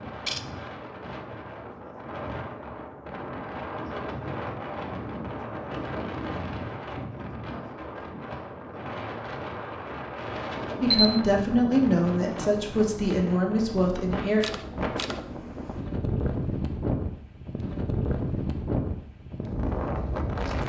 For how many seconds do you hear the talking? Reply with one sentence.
You can hear the talking for 4 seconds altogether.